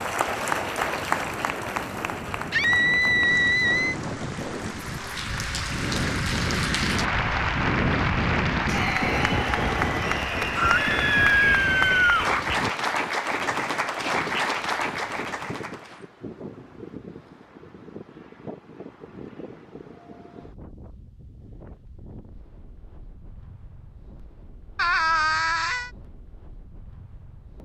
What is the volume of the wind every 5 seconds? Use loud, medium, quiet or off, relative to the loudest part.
medium, loud, medium, quiet, quiet, quiet.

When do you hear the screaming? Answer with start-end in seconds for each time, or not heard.
2.5-4.0, 10.6-12.4, 24.8-25.9.